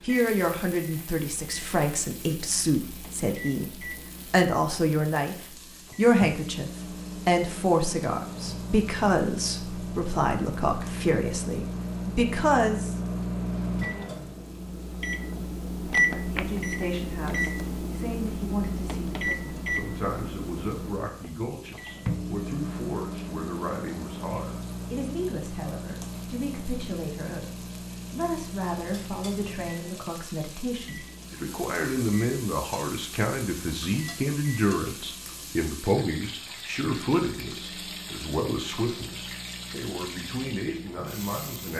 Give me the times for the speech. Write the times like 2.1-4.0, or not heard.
0.0-12.9, 16.1-41.7.